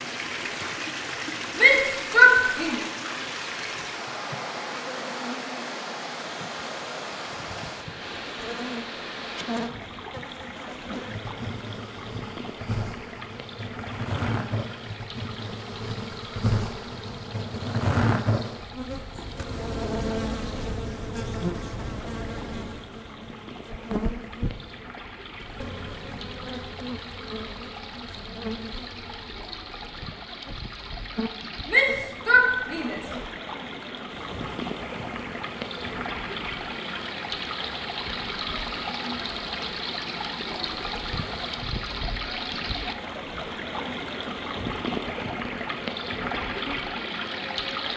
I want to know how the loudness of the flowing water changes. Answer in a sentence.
The loudness of the flowing water goes down, then up.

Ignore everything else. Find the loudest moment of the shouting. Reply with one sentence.
The loudest moment of the shouting is at 2 seconds.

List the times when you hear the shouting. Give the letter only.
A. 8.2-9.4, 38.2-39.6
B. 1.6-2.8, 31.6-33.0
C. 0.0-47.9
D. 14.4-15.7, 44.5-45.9
B.